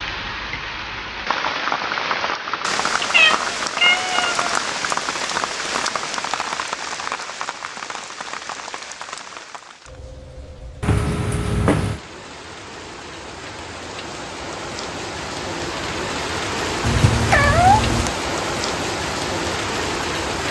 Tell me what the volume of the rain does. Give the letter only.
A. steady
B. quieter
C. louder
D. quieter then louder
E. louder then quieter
D.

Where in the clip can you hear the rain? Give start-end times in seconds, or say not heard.
0.0-20.4.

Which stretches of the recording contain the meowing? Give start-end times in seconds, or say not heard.
3.0-4.6, 10.8-12.0, 16.8-18.1.